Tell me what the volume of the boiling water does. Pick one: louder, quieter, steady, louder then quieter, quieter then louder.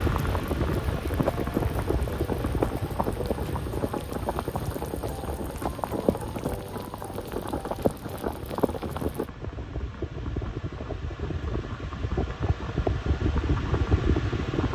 steady.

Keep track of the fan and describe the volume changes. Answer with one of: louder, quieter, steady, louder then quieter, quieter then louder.
quieter then louder.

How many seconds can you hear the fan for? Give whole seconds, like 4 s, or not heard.
15 s.